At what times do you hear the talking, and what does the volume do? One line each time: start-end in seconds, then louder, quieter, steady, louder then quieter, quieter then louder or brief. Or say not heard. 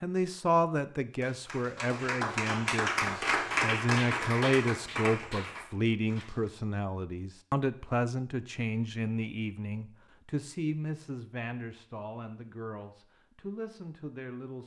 0.0-14.6 quieter.